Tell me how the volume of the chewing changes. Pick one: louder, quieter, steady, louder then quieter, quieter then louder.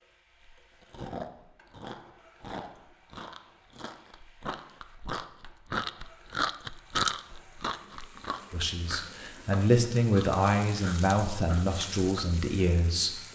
louder then quieter.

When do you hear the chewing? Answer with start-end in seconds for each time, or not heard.
0.4-12.2.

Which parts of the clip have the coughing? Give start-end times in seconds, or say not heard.
not heard.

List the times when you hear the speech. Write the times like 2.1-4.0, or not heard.
8.5-13.2.